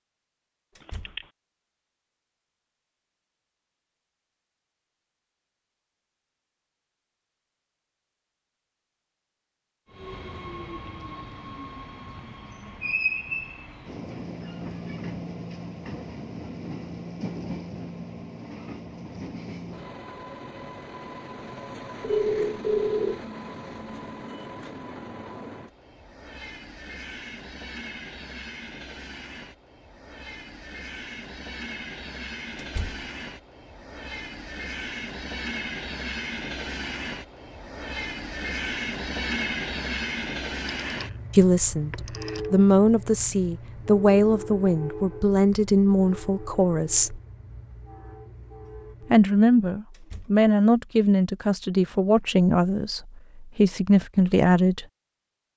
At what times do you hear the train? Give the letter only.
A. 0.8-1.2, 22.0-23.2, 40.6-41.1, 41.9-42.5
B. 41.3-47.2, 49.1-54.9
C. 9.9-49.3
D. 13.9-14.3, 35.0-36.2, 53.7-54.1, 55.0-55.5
C.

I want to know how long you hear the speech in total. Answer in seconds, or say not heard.
12 s.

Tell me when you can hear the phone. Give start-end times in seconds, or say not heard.
0.8-1.2, 22.0-23.2, 40.6-41.1, 41.9-42.5.